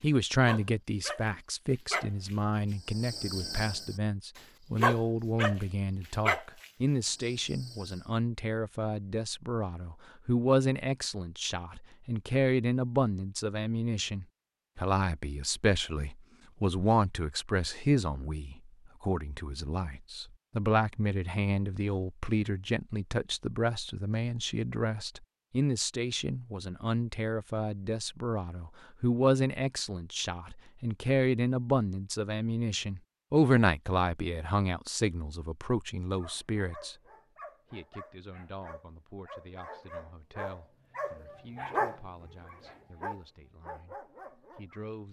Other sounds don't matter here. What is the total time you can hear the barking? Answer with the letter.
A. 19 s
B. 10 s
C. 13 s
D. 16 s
D.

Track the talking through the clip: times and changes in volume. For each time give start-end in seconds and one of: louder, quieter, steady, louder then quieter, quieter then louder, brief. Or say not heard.
0.0-37.0 steady
37.7-45.0 quieter.